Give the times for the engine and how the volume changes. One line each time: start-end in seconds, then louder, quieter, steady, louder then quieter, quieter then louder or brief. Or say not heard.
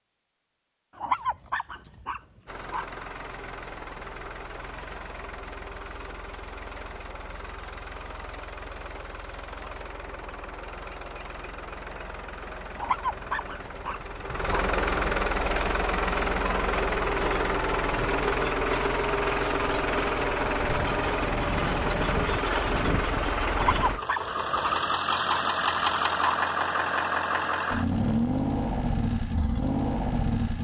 2.5-30.6 louder.